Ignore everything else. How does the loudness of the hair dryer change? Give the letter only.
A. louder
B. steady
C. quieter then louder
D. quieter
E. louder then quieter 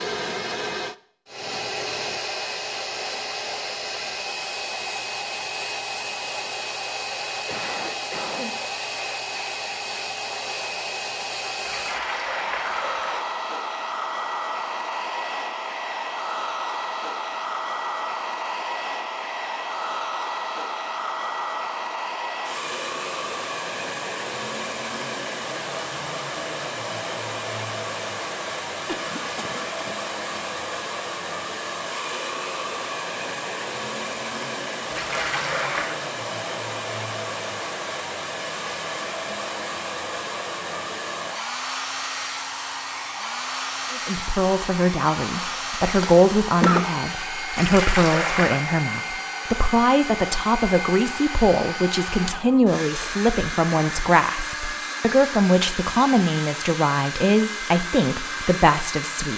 B.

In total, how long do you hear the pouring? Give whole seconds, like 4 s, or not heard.
4 s.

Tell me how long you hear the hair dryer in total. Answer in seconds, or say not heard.
59 s.